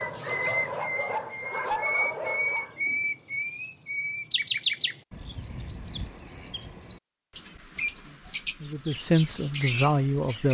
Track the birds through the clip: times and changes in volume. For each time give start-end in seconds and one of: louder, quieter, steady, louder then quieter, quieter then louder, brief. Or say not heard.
0.0-10.4 steady.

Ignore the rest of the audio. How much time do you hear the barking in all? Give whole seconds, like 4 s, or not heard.
3 s.